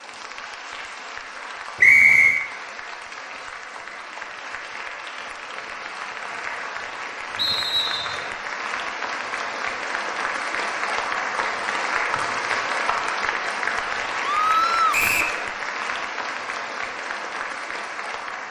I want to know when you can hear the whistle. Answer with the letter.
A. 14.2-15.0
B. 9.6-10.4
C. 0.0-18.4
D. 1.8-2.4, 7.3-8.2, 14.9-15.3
D.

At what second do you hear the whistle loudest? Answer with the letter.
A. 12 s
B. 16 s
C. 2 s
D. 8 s
C.